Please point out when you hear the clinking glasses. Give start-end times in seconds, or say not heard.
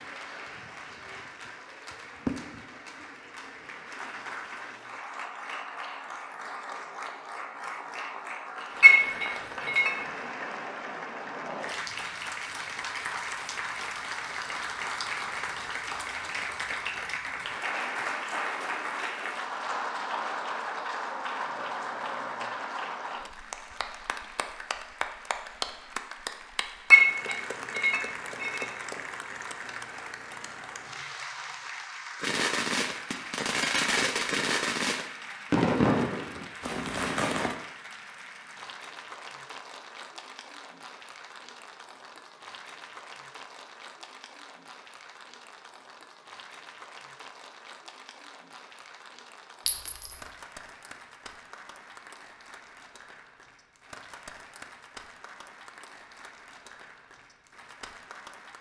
8.8-9.9, 26.9-28.6, 49.6-50.2.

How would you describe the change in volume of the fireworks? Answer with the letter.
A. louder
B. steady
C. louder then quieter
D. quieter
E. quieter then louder
C.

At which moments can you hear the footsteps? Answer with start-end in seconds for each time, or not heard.
not heard.